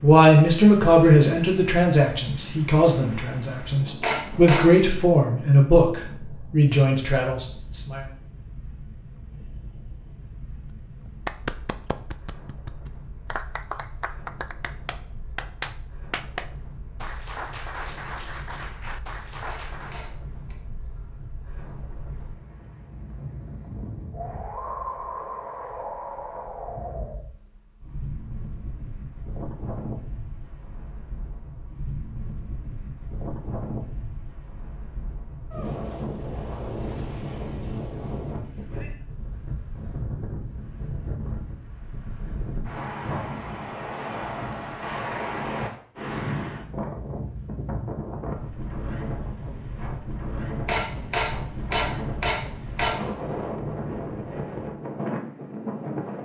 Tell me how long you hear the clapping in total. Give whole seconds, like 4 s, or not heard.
9 s.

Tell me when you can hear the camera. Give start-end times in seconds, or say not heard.
4.0-4.8, 19.4-20.6, 50.6-53.4.